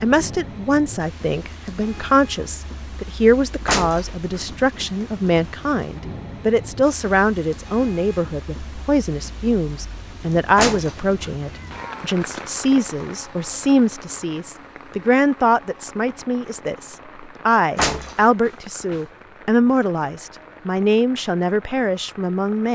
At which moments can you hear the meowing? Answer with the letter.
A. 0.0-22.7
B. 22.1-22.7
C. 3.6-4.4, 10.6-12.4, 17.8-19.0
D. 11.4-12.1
D.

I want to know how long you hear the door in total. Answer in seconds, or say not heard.
4 s.